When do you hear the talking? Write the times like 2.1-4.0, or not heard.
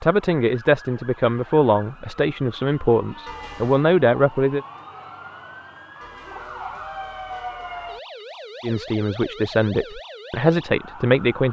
0.0-4.6, 8.6-11.4.